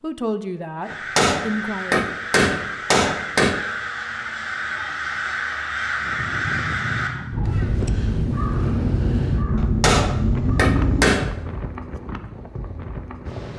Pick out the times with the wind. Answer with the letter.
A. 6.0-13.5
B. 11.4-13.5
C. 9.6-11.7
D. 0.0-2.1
A.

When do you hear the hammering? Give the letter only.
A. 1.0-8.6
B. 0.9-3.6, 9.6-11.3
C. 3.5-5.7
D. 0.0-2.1
B.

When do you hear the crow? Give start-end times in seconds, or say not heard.
0.8-11.1.